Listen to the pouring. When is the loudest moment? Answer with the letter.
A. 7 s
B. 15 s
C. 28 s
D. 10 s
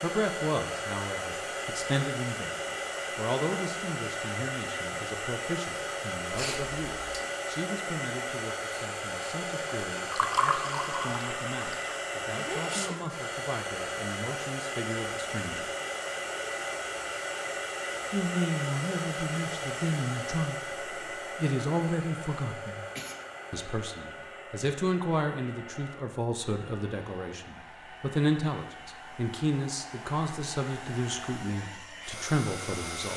D.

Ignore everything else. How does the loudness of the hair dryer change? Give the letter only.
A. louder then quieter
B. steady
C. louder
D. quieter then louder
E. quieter
E.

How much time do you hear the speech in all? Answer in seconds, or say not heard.
29 s.